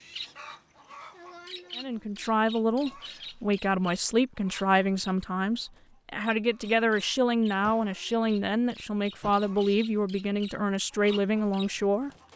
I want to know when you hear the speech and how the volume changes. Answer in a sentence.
You can hear the speech from 1.8 to 12.3 s, at a steady volume.